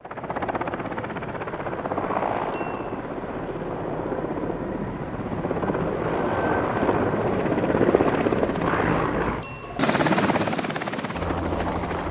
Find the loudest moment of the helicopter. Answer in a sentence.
The volume of the helicopter peaks at 8 seconds.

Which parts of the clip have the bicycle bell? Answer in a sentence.
The bicycle bell can be heard from 2.5 to 3.0 s and from 9.4 to 9.9 s.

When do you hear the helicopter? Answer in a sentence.
You can hear the helicopter from 0.0 to 12.0 s.